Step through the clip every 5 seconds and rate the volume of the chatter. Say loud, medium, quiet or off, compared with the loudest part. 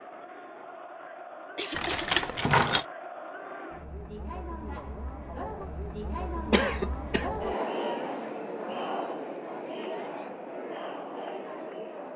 medium, loud, loud.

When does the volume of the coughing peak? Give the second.
7 s.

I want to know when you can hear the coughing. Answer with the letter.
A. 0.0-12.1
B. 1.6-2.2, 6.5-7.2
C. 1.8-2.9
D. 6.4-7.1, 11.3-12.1
B.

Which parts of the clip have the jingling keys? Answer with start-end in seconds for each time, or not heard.
1.8-2.9.